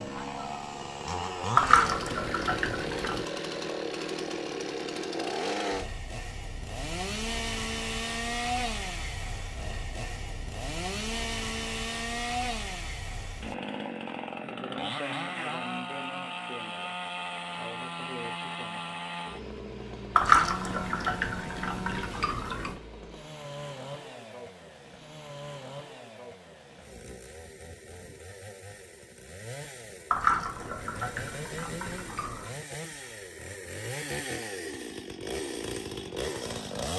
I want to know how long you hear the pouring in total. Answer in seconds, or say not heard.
7 s.